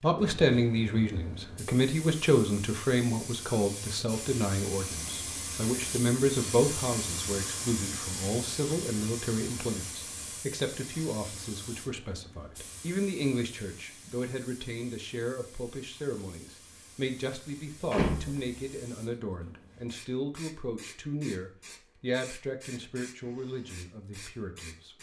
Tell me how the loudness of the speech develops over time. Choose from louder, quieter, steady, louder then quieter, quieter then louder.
quieter.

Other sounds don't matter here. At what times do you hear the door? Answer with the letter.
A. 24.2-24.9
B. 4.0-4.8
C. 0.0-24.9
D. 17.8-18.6
D.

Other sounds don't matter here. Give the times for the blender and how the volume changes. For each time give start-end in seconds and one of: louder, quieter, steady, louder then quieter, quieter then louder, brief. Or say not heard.
not heard.